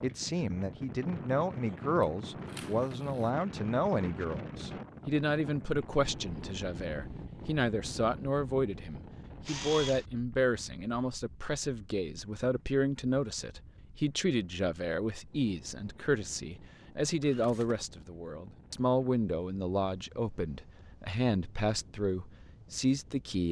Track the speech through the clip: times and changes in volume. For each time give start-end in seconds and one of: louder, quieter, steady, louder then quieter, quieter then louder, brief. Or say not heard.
0.0-23.4 steady.